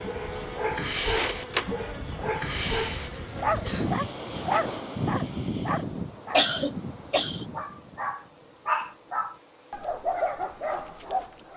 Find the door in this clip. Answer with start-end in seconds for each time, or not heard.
not heard.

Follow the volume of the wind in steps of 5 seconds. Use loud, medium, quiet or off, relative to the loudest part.
loud, loud, off.